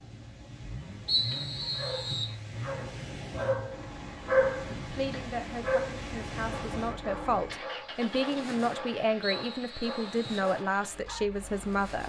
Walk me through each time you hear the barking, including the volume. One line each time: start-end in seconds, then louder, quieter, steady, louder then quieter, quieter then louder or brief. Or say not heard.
1.8-11.4 louder then quieter.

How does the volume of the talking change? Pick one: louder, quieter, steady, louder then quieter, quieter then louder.
louder.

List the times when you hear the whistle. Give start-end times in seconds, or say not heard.
1.1-2.4, 9.2-10.5.